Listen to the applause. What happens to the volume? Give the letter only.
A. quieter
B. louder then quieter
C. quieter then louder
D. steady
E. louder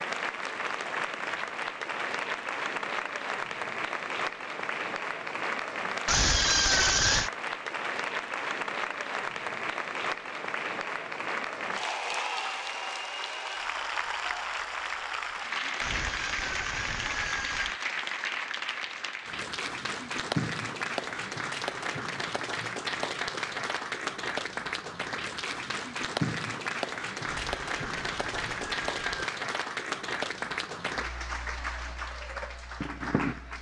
D.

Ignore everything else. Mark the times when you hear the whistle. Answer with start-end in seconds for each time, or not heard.
not heard.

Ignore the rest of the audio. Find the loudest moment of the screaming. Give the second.
7 s.